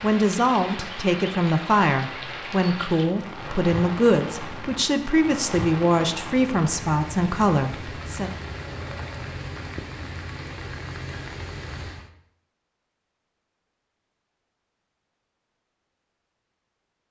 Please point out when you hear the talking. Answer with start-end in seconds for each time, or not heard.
0.0-8.3.